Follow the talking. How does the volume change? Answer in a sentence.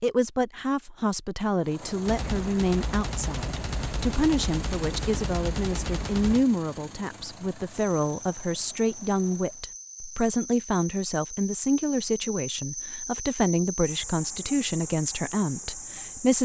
The volume of the talking stays about the same.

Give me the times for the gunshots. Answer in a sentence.
You can hear the gunshots from 2.0 to 6.5 s.